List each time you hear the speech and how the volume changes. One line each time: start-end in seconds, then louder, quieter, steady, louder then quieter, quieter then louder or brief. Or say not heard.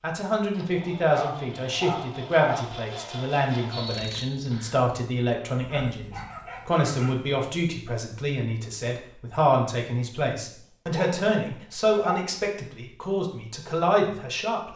0.0-14.7 steady.